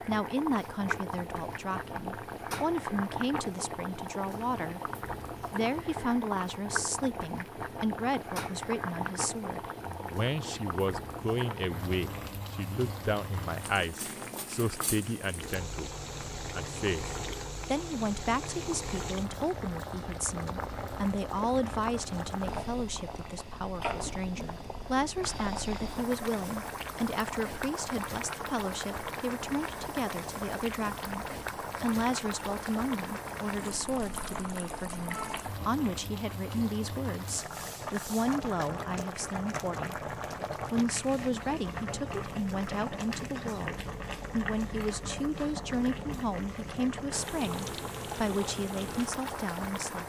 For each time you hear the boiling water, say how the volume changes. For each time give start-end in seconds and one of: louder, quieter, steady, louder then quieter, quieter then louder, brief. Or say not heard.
0.0-50.0 steady.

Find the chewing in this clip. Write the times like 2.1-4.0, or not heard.
not heard.